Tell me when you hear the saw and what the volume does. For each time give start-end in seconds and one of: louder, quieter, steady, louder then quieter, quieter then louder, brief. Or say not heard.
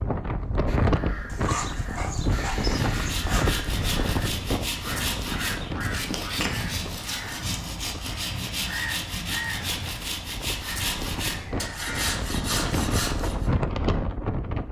2.9-13.5 steady.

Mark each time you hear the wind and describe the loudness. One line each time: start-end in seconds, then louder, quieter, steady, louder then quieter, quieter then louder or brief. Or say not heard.
0.0-14.6 quieter then louder.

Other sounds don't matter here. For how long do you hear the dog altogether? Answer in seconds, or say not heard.
2 s.